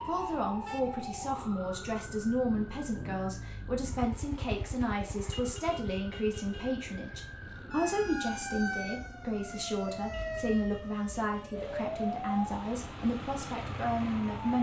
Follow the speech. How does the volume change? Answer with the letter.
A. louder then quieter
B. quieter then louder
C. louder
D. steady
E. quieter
D.